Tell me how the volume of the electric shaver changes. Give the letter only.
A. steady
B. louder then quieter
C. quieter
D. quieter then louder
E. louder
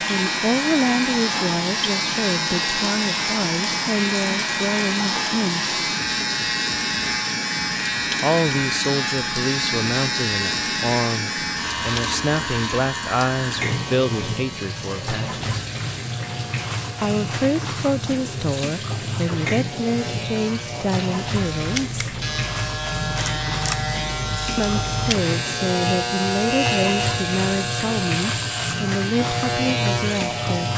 D.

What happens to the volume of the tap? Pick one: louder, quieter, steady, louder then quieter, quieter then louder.
steady.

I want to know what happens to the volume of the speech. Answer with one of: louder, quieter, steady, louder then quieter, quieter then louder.
steady.